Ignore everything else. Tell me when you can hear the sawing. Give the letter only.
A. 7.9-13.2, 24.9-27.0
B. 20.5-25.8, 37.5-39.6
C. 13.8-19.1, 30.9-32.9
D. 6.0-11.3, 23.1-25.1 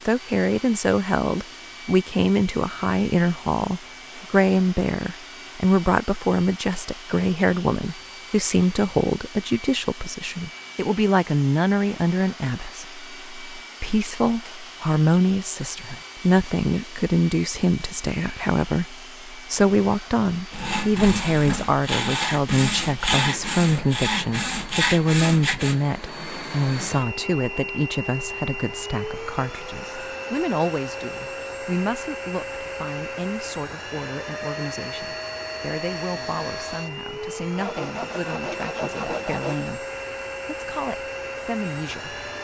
B.